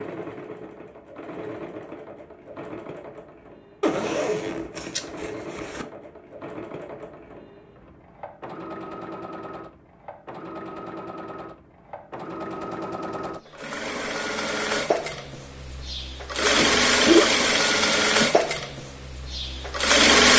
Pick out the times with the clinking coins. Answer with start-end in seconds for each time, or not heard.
not heard.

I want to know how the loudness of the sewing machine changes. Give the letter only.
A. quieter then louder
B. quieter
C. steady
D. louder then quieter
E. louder
E.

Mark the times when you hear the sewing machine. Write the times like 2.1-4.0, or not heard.
0.0-20.3.